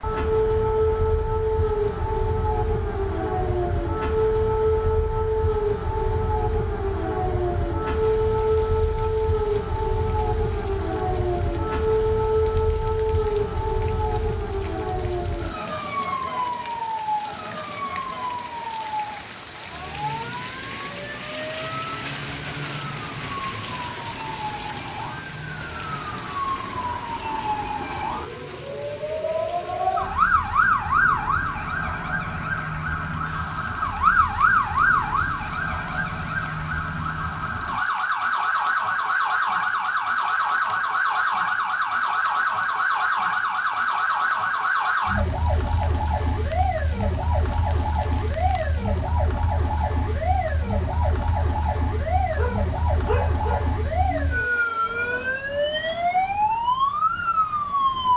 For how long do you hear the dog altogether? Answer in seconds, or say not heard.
2 s.